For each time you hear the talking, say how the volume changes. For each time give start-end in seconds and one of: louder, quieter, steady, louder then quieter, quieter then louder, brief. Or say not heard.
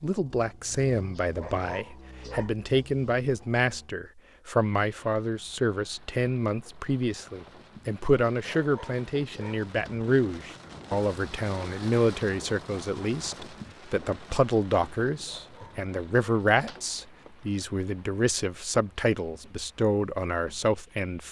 0.0-21.2 steady.